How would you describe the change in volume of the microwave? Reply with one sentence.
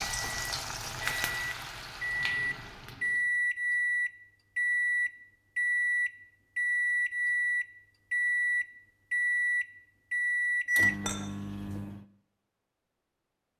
The volume of the microwave stays about the same.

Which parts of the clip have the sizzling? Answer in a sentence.
The sizzling can be heard from 0.0 to 3.2 s.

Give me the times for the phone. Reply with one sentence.
You can't hear the phone here.